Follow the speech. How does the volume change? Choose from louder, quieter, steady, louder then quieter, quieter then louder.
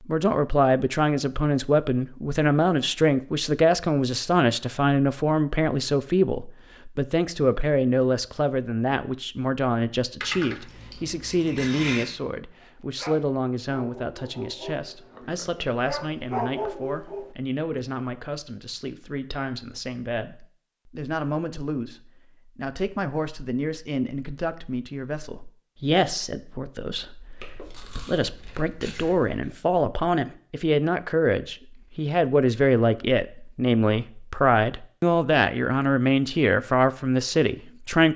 quieter then louder.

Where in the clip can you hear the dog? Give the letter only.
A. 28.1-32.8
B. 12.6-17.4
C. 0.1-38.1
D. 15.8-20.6
B.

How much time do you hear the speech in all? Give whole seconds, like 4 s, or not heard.
38 s.